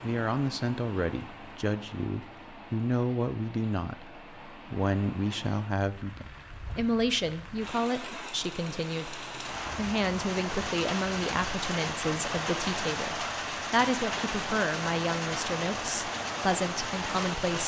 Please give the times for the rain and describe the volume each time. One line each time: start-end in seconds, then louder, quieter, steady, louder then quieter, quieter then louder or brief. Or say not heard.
0.0-17.6 louder.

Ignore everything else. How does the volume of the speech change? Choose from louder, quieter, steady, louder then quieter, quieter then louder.
steady.